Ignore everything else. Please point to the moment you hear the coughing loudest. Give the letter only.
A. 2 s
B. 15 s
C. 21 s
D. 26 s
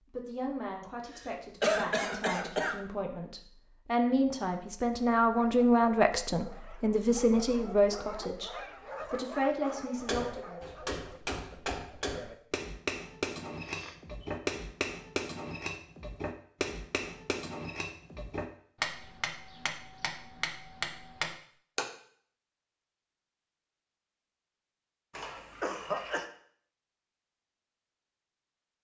A.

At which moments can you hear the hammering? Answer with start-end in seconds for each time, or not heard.
9.9-21.9.